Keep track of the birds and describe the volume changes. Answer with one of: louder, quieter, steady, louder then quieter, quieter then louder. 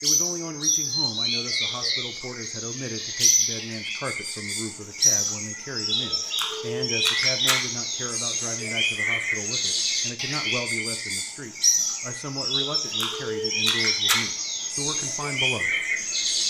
steady.